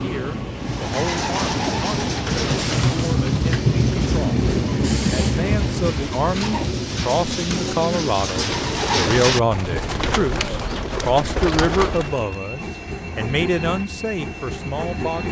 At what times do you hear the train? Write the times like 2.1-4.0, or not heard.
0.0-15.2.